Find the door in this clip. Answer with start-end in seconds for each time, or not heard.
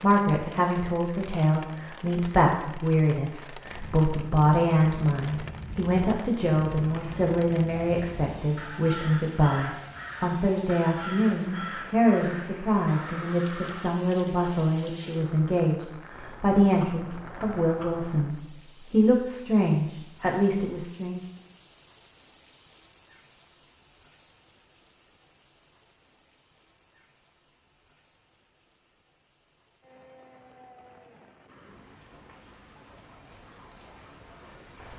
not heard.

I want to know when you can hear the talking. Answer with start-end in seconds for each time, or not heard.
0.0-21.2.